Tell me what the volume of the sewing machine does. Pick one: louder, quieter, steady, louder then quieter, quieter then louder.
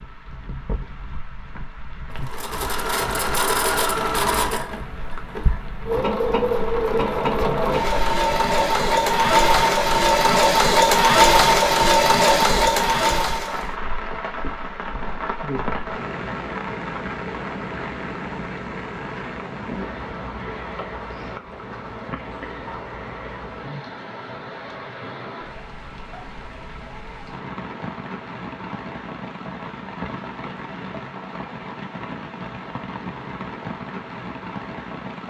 louder.